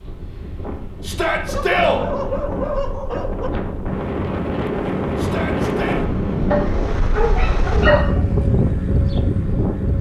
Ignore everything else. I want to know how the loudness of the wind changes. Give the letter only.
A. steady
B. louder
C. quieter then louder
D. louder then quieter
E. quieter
B.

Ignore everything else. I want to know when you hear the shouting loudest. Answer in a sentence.
The volume of the shouting peaks at 2 seconds.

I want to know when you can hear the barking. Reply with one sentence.
The barking can be heard from 1.4 to 3.5 s and from 6.5 to 8.2 s.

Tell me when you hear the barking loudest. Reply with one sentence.
The volume of the barking peaks at 8 seconds.